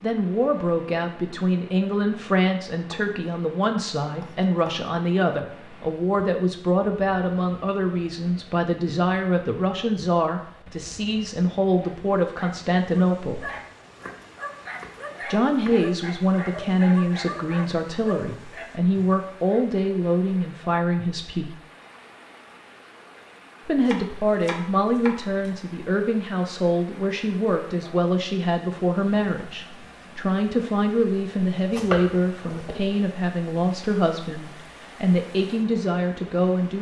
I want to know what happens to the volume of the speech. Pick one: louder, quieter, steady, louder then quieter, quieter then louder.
steady.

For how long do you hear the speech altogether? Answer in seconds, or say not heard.
33 s.